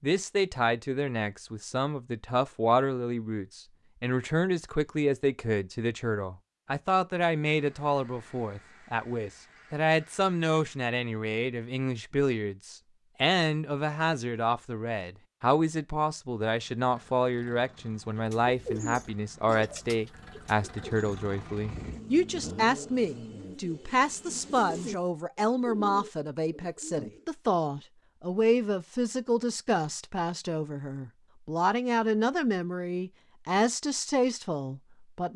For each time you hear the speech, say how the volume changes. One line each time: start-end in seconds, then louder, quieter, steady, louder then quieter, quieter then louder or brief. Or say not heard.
0.0-35.3 steady.